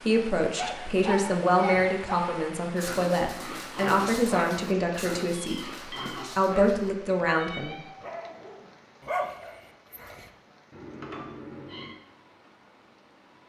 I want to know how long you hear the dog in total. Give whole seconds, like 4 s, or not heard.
10 s.